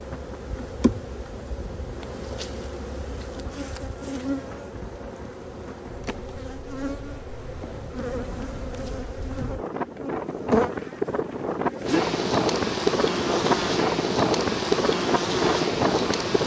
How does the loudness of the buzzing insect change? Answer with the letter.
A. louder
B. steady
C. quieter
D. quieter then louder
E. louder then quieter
A.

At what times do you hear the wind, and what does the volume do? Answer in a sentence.
The wind can be heard from 0.0 to 16.4 s, getting louder.